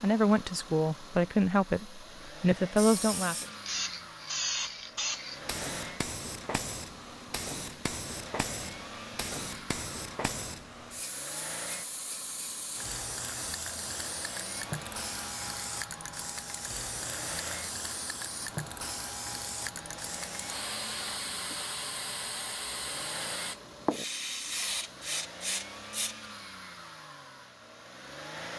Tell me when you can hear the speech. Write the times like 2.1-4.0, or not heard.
0.0-3.5.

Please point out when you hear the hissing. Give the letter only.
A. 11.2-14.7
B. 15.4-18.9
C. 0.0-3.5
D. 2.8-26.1
D.